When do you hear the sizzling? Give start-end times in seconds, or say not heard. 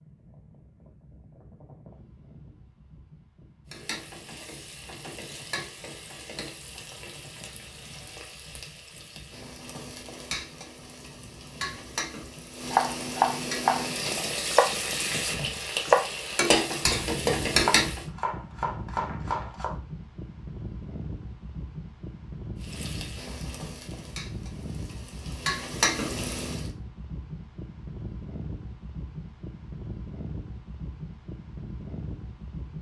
3.7-18.1, 22.6-26.7.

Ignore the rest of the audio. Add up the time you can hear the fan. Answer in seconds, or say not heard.
33 s.